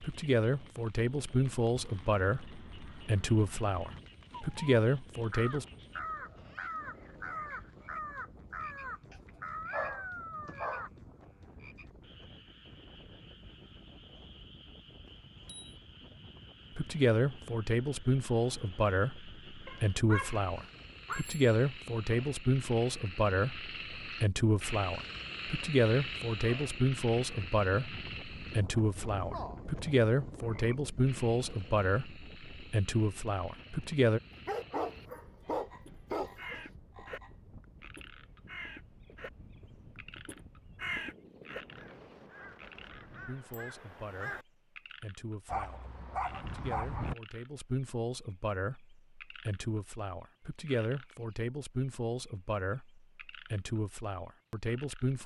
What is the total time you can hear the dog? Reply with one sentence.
You can hear the dog for 7 seconds altogether.